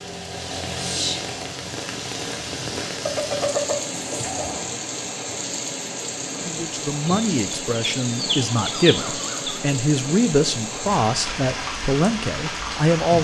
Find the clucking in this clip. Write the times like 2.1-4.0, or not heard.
3.0-4.8, 7.0-9.6.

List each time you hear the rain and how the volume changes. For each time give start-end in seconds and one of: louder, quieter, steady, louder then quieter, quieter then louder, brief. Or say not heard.
0.0-13.1 steady.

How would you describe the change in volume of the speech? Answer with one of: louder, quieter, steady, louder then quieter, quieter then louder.
steady.